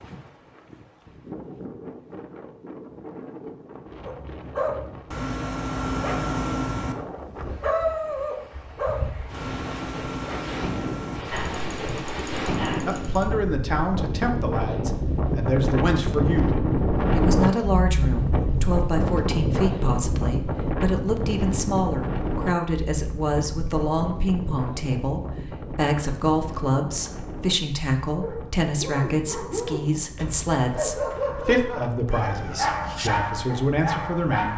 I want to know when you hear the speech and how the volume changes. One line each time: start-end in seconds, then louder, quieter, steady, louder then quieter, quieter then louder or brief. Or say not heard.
12.8-34.5 steady.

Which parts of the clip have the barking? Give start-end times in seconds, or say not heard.
4.0-13.3, 28.1-34.5.